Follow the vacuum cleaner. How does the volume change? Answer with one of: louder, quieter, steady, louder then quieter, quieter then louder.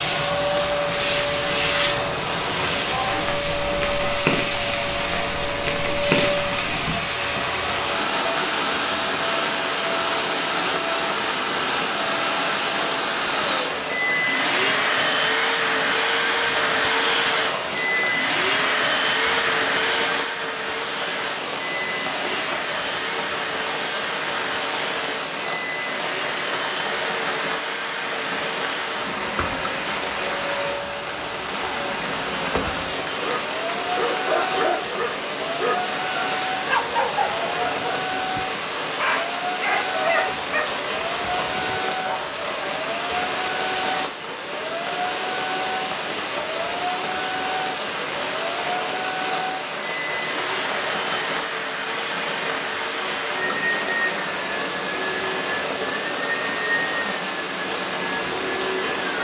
quieter.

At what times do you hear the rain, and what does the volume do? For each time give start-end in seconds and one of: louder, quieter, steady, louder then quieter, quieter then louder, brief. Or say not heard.
0.0-59.1 steady.